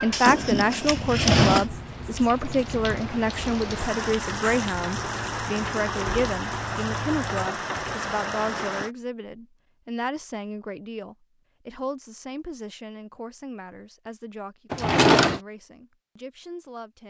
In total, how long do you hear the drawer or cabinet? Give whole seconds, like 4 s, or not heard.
2 s.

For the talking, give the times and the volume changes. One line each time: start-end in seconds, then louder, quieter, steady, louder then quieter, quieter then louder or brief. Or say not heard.
0.0-17.0 quieter.